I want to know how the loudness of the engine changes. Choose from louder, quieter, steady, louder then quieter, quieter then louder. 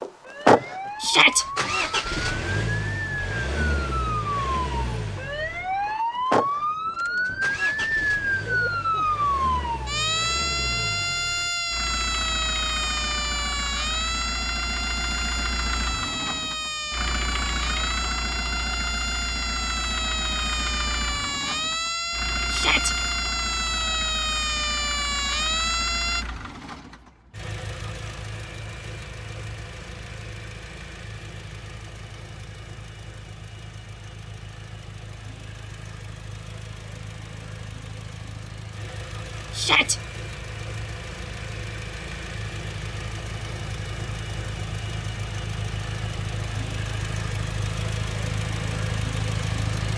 quieter then louder.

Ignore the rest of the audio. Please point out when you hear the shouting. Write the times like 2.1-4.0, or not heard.
1.0-1.4, 22.5-22.9, 39.5-40.0.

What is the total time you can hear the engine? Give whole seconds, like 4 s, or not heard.
50 s.